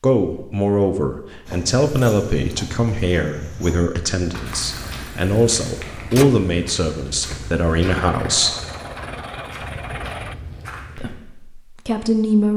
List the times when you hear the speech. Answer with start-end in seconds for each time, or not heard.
0.0-8.6, 10.9-12.5.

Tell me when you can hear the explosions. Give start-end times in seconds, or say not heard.
not heard.